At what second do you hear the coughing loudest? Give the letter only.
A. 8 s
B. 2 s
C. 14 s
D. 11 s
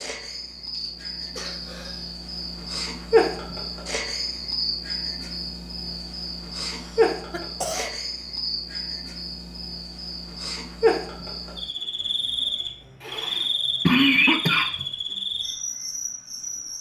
C.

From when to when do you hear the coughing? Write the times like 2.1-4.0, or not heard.
0.7-2.1, 6.7-7.9, 13.0-14.8.